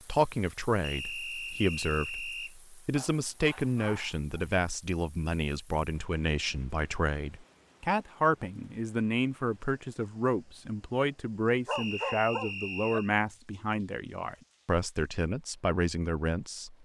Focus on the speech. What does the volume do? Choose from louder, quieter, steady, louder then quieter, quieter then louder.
steady.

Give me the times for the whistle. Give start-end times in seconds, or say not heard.
0.8-2.5, 11.7-13.1.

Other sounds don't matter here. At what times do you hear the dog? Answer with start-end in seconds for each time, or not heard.
3.0-4.5, 11.7-13.0.